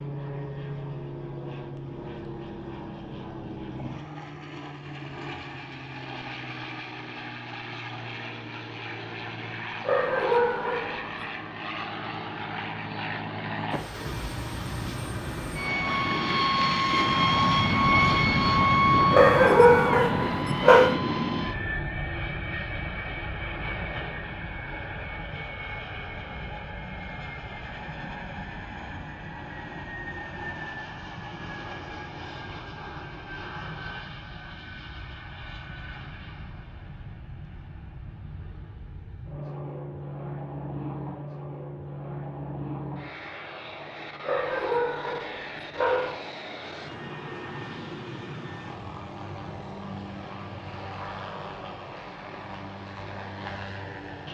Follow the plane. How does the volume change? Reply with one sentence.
The volume of the plane goes up, then down.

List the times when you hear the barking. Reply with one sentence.
The barking can be heard from 9.8 to 11.1 s, from 19.1 to 20.9 s and from 44.2 to 46.1 s.